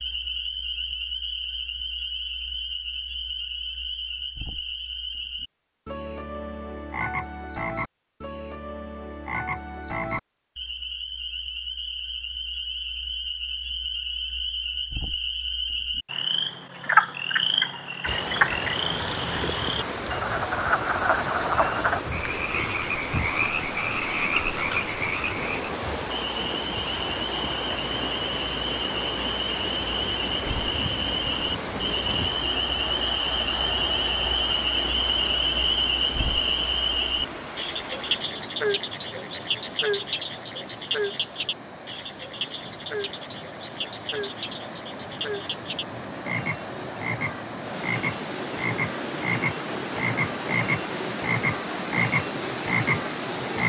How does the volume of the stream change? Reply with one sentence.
The loudness of the stream goes down, then up.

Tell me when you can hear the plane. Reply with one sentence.
The plane can't be heard in this clip.